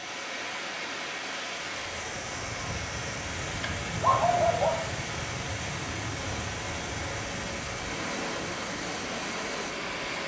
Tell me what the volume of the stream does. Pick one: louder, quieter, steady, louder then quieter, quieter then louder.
steady.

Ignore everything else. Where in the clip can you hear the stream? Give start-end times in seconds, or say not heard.
0.0-10.2.